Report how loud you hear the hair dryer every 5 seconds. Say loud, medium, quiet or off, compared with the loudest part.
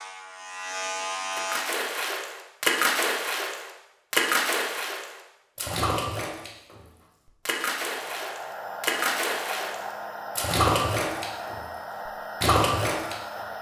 off, loud, loud.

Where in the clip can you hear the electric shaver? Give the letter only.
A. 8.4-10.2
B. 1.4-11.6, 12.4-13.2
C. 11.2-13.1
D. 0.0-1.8
D.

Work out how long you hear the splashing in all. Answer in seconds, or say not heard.
11 s.